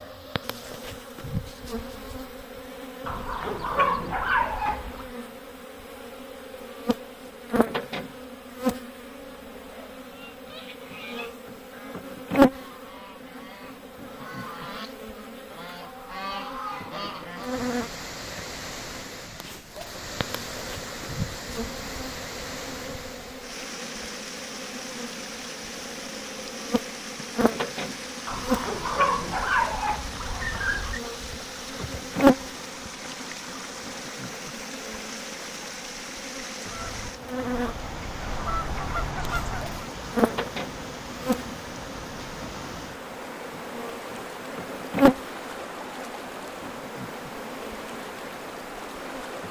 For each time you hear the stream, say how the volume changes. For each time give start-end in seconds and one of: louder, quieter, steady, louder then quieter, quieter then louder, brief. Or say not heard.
17.4-49.4 steady.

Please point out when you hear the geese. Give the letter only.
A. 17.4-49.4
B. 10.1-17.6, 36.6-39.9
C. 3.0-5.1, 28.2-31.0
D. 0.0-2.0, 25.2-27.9
B.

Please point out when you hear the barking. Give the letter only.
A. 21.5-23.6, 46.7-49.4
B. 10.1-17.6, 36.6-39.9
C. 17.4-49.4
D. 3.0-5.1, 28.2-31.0
D.